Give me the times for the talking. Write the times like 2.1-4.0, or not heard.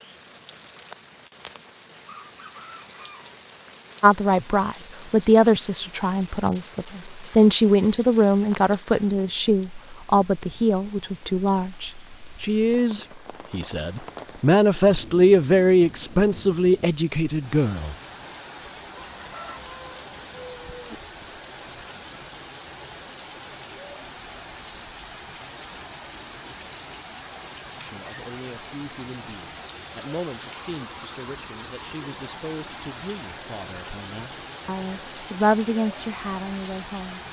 4.0-17.9, 27.8-37.2.